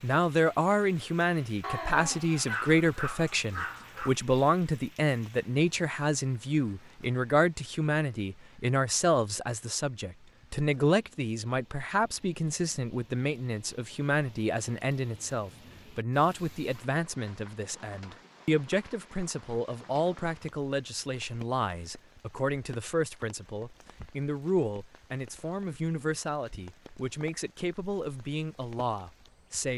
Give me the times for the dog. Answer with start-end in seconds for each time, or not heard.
1.6-4.2.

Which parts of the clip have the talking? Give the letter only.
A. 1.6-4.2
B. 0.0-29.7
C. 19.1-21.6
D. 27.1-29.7
B.